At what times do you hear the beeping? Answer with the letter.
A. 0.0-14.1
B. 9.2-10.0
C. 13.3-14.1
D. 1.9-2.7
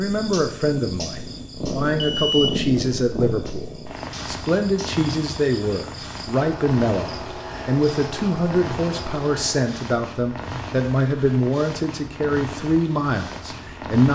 D.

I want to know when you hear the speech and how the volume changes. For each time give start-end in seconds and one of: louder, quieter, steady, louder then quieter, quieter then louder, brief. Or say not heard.
0.0-14.1 steady.